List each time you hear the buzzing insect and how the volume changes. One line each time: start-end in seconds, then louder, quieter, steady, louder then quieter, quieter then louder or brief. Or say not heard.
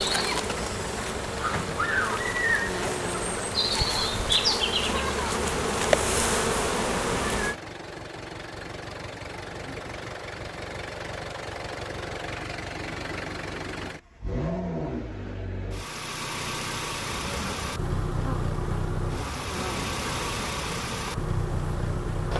0.0-7.5 louder
17.1-22.3 steady.